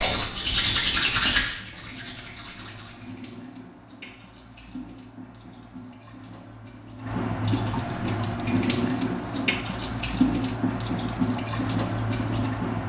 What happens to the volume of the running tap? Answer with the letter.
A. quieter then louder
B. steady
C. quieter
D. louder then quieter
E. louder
E.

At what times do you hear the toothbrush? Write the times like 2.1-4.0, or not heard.
0.0-3.1.